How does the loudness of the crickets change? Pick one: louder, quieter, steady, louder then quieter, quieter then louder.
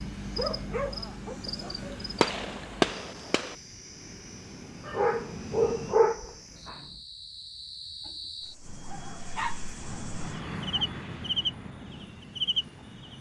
quieter then louder.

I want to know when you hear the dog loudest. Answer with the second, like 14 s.
6 s.